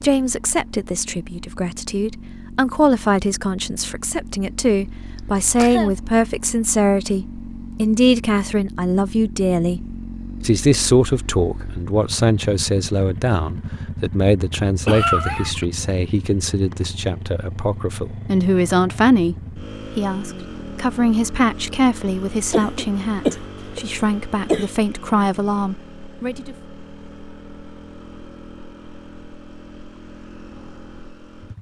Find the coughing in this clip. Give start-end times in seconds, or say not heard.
5.2-6.0, 14.8-15.7, 22.5-24.6.